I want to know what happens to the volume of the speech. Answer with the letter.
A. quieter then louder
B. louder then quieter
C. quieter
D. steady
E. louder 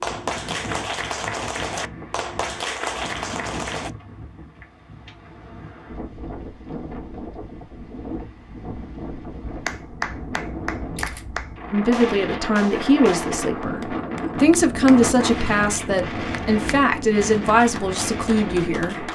D.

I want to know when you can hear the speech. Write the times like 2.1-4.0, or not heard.
11.7-19.1.